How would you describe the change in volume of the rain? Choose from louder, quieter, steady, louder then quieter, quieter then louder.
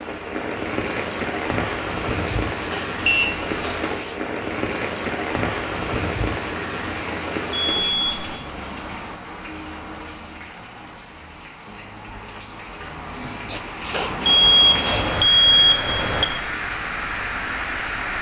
quieter then louder.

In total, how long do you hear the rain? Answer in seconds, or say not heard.
18 s.